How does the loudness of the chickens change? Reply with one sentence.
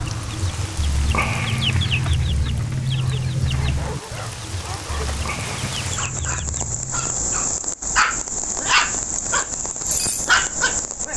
The volume of the chickens goes down.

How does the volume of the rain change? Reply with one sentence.
The volume of the rain goes up.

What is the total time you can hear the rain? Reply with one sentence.
The rain can be heard for 11 seconds in total.